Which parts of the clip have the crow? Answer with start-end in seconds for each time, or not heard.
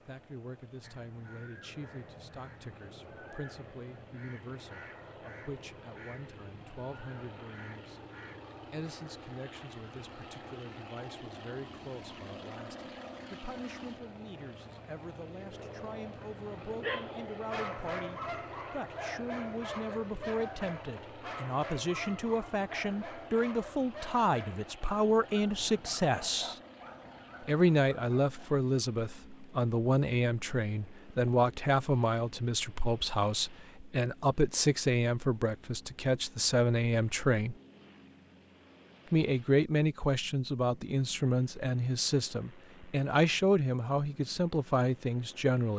0.8-8.4.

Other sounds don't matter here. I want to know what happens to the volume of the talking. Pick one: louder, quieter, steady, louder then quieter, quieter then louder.
louder.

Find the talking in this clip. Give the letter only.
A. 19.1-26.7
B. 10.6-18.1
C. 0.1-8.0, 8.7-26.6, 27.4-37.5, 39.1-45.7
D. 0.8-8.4
C.